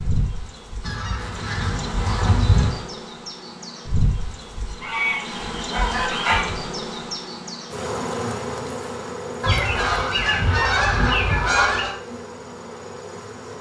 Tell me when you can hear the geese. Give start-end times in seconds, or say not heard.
0.8-2.7, 4.8-6.5, 9.4-11.9.